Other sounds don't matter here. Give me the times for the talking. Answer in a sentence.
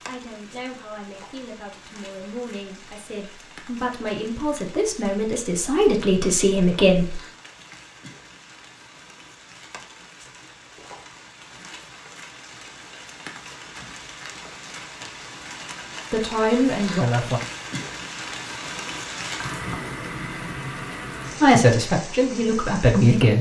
The talking can be heard from 0.1 to 7.2 s, from 16.1 to 17.4 s and from 21.4 to 23.3 s.